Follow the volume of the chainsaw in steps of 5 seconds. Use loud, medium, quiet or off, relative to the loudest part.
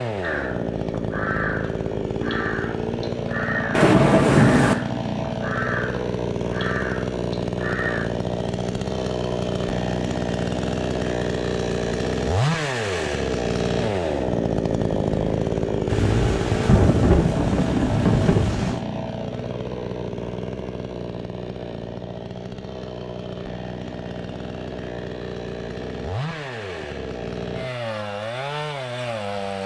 loud, loud, loud, loud, medium, medium.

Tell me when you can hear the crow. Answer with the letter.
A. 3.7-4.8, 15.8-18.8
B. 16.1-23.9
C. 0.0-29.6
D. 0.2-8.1
D.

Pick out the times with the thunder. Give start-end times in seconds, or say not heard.
3.7-4.8, 15.8-18.8.